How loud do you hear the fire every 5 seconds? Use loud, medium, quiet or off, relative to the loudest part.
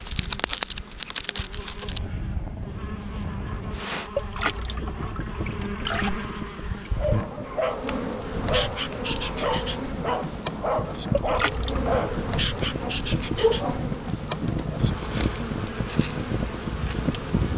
loud, medium, loud, loud.